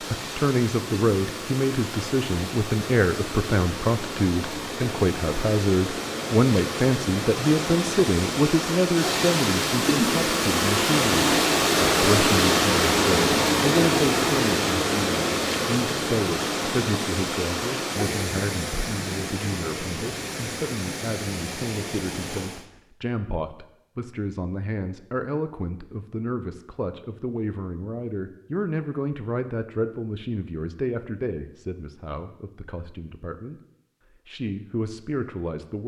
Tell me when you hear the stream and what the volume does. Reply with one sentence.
The stream can be heard from 0.0 to 22.6 s, getting louder then quieter.